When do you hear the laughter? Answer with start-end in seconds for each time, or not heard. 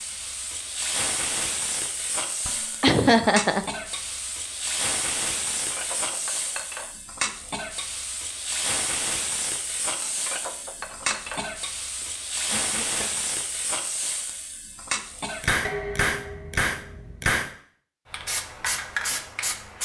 2.8-3.6, 12.0-13.1.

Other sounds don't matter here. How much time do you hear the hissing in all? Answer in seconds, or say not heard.
20 s.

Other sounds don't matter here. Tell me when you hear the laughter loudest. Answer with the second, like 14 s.
3 s.